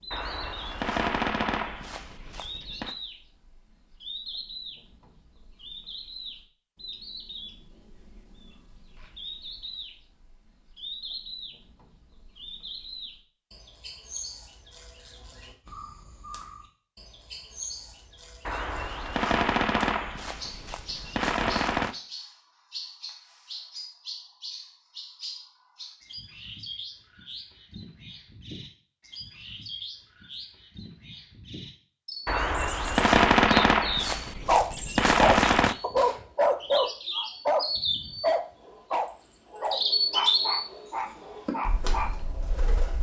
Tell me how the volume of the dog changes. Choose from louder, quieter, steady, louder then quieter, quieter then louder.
quieter.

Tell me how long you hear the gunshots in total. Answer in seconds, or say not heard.
10 s.